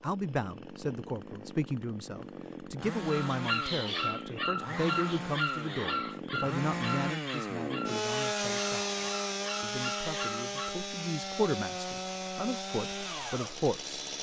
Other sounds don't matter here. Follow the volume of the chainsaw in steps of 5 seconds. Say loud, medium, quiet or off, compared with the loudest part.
medium, loud, loud.